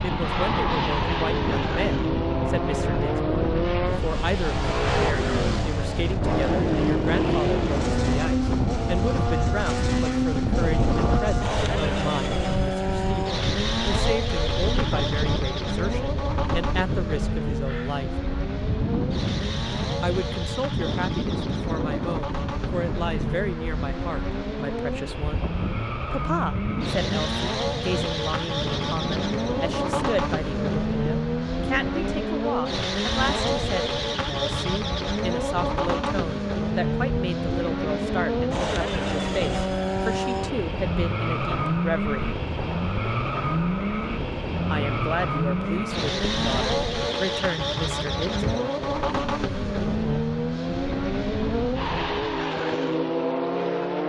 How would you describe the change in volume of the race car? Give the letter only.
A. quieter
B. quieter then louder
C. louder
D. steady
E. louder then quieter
D.